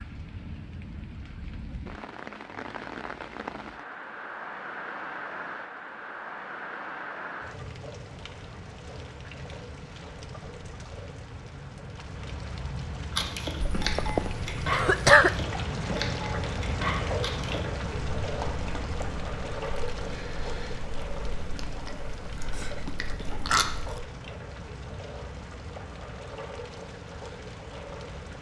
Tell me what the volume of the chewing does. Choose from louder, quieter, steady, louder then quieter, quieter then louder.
quieter then louder.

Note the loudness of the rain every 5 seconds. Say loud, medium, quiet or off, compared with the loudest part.
medium, medium, medium, loud, medium, medium.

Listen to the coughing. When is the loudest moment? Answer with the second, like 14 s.
15 s.